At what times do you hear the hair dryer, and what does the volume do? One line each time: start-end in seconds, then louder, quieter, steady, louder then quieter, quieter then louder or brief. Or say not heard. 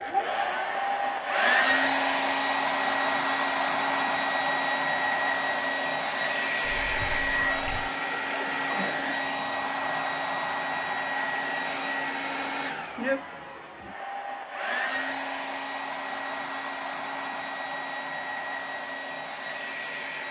0.0-20.2 quieter.